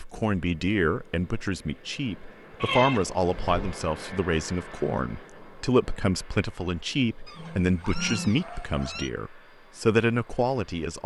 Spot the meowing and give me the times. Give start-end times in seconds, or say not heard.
2.6-3.8, 7.2-9.1.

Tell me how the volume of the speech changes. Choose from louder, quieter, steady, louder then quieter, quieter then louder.
steady.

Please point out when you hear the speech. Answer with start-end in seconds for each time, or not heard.
0.0-11.0.